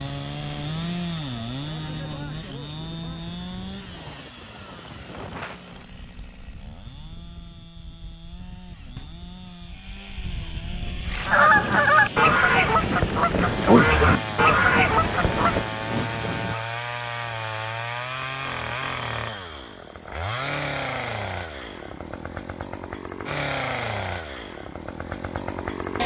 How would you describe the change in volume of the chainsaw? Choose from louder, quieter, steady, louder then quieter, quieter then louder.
quieter then louder.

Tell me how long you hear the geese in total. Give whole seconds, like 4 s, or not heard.
6 s.